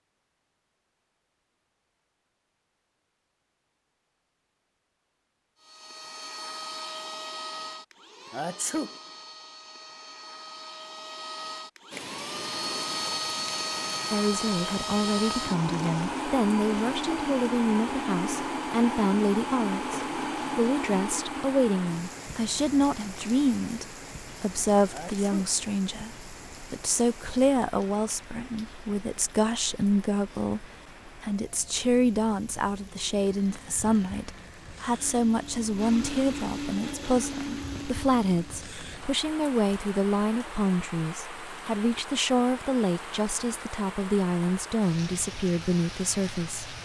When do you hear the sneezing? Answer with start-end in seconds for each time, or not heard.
8.3-8.9, 24.9-25.4.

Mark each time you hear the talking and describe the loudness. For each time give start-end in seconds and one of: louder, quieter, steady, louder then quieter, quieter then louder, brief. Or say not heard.
14.1-46.7 steady.